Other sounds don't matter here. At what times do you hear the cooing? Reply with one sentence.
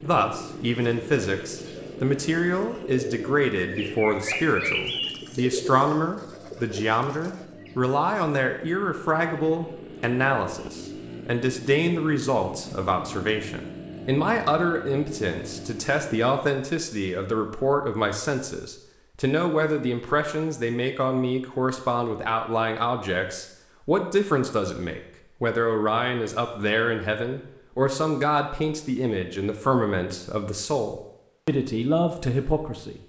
The cooing can be heard from 0.7 to 7.8 s.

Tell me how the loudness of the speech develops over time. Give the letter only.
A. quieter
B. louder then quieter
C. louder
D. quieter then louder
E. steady
E.